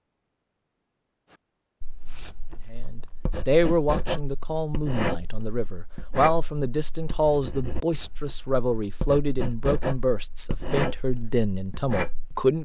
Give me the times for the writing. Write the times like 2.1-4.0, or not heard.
1.8-12.3.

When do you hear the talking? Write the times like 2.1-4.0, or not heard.
2.7-12.5.